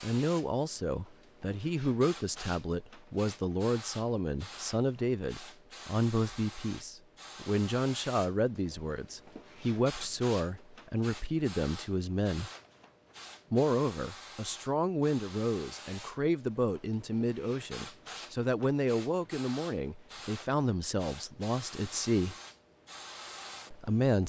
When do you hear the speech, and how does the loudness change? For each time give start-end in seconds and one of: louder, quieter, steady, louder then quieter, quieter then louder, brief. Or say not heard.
0.0-12.5 steady
13.5-22.4 steady
23.7-24.2 brief.